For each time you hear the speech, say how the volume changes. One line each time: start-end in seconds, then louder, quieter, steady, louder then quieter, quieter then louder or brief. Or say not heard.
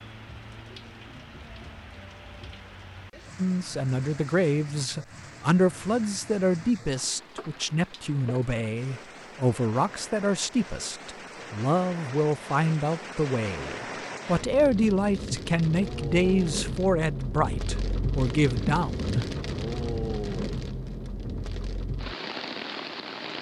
3.4-19.4 steady.